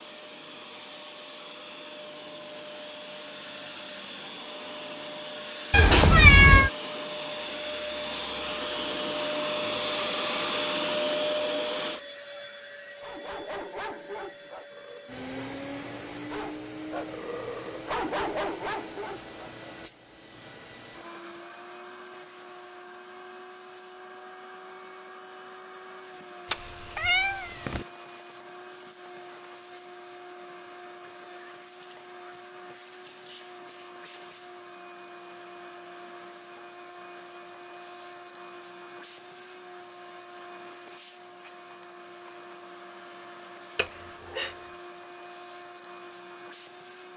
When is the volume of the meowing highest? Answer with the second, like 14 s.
6 s.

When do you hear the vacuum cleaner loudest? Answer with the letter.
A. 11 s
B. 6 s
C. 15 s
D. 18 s
A.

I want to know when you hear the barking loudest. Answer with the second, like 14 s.
18 s.